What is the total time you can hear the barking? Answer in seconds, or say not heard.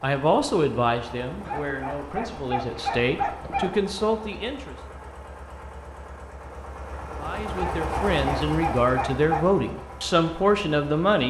4 s.